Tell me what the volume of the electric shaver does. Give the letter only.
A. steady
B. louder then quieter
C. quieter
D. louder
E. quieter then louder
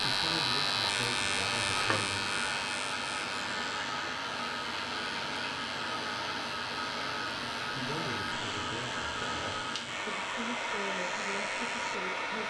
C.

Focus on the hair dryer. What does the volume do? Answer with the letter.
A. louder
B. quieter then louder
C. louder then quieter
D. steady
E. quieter
D.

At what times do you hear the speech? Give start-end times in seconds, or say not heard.
0.0-2.4, 7.7-12.4.